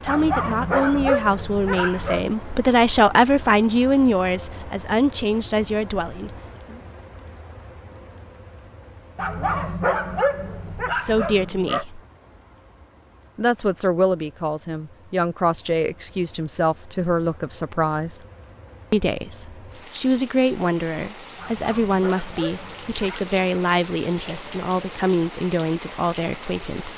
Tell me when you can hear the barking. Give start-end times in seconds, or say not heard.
0.1-2.2, 9.2-11.8, 21.4-23.2.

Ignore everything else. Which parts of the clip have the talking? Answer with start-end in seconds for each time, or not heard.
0.0-6.8, 10.9-12.0, 13.3-18.2, 18.9-26.9.